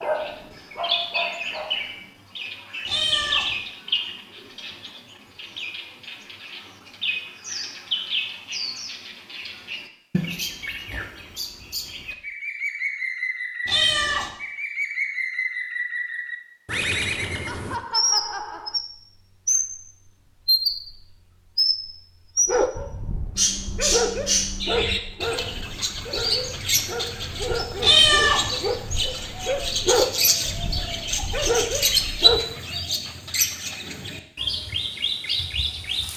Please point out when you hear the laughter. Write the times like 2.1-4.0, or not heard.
17.4-18.8.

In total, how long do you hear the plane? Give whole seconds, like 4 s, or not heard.
not heard.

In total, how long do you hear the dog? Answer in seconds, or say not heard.
12 s.